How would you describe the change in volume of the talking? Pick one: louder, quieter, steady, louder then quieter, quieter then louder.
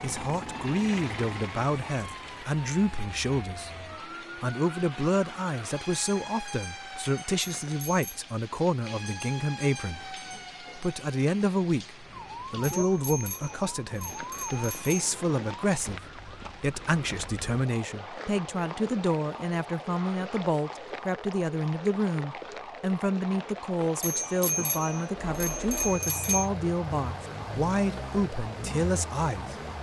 steady.